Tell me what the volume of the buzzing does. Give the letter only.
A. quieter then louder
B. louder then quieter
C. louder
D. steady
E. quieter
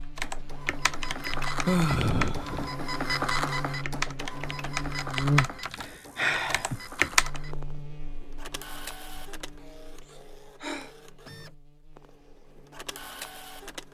B.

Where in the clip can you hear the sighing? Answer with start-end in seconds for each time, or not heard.
1.6-2.7, 5.8-6.8, 10.0-10.9.